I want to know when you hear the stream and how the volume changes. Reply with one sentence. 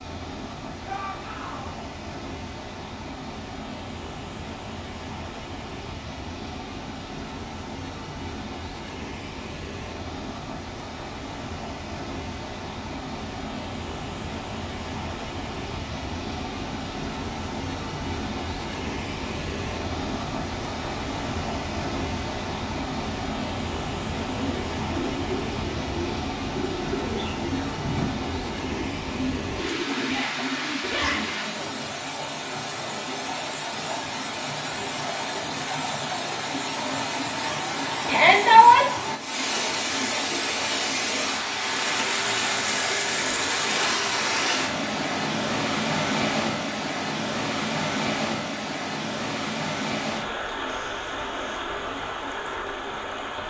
You can hear the stream from 0.0 to 53.4 s, getting louder.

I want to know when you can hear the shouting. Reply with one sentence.
You can hear the shouting from 0.8 to 1.7 s, from 30.0 to 31.4 s and from 38.0 to 38.9 s.